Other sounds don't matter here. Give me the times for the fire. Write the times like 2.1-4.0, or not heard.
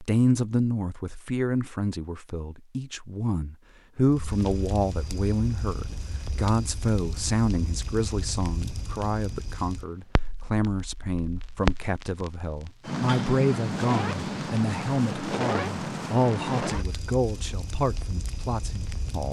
4.0-19.2.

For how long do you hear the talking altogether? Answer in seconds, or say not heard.
19 s.